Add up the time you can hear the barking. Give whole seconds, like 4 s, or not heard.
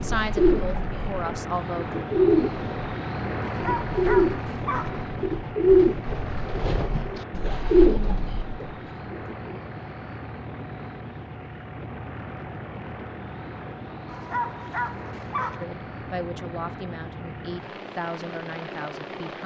3 s.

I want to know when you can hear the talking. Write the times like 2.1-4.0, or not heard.
0.0-2.0, 15.6-19.4.